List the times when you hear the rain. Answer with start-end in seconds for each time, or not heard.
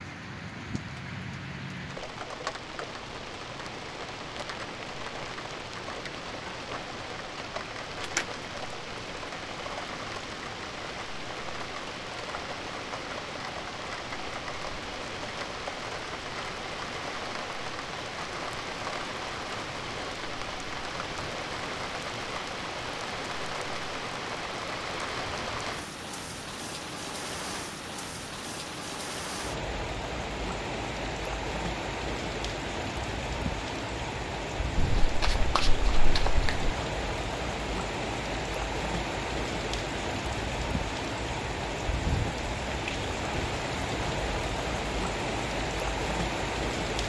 0.0-47.0.